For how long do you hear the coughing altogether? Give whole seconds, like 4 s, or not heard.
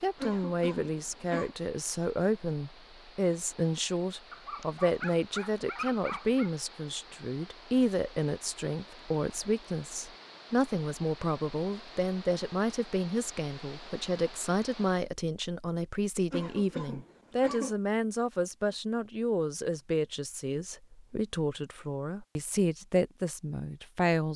3 s.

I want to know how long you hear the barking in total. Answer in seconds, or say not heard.
2 s.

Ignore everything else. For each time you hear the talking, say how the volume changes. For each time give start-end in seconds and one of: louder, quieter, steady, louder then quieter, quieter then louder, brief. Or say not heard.
0.0-24.3 steady.